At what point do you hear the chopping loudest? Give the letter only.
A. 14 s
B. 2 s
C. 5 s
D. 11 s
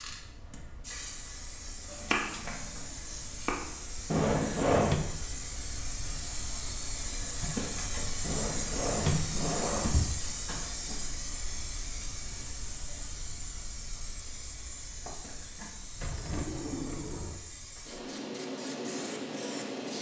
B.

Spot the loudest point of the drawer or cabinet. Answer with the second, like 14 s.
5 s.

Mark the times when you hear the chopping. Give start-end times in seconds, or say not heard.
1.9-3.6.